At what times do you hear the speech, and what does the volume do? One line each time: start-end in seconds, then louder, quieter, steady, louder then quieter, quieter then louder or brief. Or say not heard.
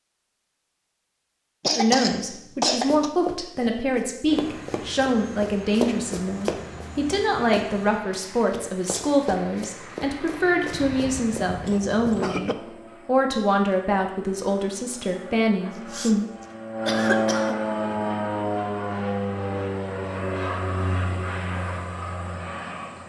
1.8-16.2 steady.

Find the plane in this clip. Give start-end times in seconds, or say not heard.
4.2-23.0.